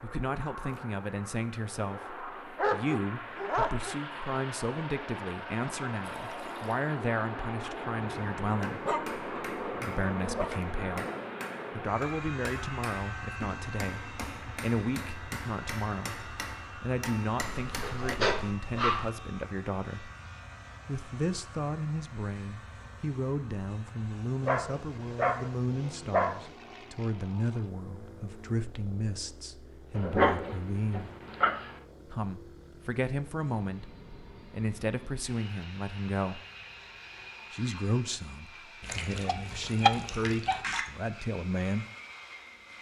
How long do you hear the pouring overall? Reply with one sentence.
You can hear the pouring for 3 seconds altogether.